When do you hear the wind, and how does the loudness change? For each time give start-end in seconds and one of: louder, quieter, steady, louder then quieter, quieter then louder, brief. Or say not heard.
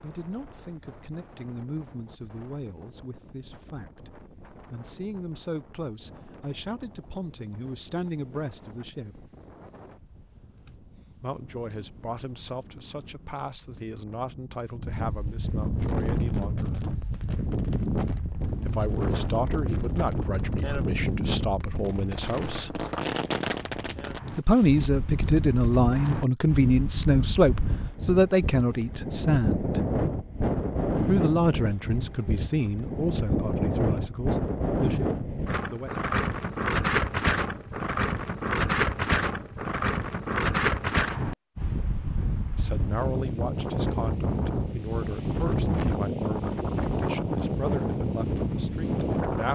0.0-49.5 louder.